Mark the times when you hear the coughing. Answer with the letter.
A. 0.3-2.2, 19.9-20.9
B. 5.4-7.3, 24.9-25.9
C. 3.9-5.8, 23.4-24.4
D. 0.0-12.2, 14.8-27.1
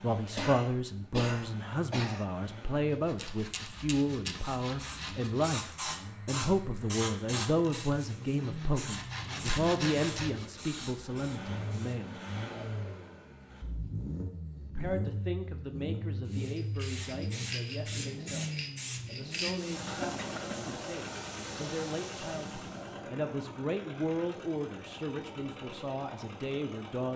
A.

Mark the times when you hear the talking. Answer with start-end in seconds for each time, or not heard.
0.0-12.2, 14.8-27.1.